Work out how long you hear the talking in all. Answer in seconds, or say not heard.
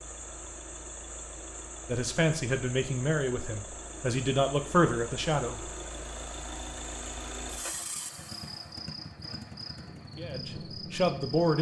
5 s.